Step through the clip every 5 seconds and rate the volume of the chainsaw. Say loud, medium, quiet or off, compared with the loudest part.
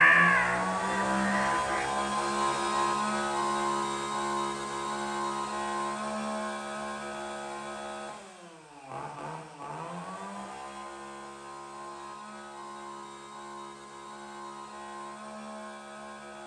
loud, medium, quiet, quiet.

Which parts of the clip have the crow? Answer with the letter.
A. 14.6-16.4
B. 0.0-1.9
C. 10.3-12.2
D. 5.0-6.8
B.